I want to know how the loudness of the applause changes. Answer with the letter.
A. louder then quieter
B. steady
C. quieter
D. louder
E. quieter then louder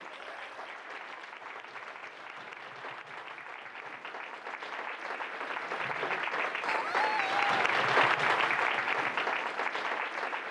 D.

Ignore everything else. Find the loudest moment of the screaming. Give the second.
7 s.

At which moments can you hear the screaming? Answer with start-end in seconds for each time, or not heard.
0.1-0.8, 6.7-7.5.